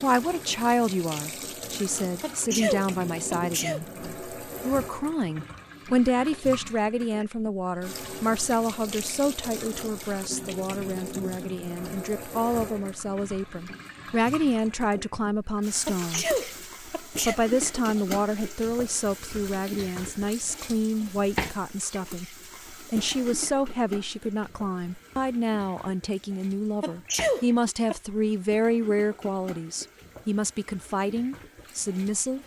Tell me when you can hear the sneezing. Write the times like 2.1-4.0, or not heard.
2.2-3.8, 15.8-17.4, 26.8-27.9.